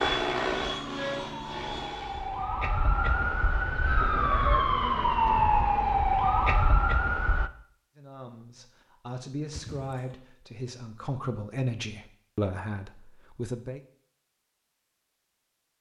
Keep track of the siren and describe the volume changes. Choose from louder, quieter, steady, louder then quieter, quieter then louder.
louder.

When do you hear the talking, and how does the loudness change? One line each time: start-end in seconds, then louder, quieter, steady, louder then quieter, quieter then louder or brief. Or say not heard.
8.0-13.8 louder.